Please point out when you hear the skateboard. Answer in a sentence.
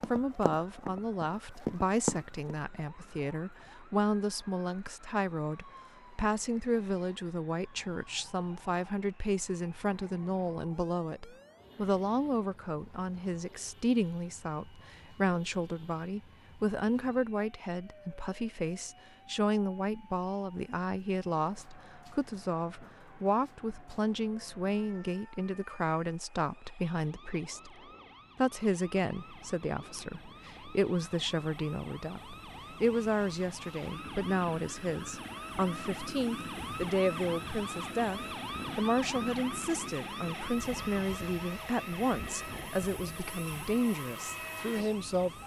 The skateboard can't be heard in this clip.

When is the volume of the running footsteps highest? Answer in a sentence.
The loudest moment of the running footsteps is at 2 seconds.